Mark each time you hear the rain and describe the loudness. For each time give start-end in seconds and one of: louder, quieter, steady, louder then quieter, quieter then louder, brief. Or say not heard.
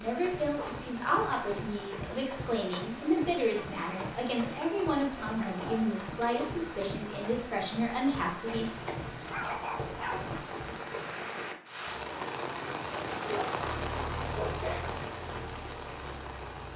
0.0-16.7 louder.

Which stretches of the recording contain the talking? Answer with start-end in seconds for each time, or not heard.
0.0-8.7.